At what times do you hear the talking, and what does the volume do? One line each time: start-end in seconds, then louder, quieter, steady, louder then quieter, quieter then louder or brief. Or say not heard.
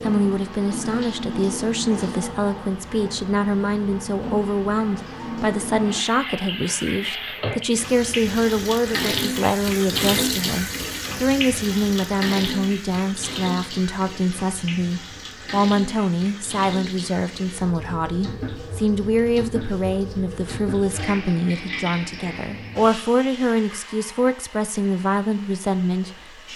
0.0-26.5 steady.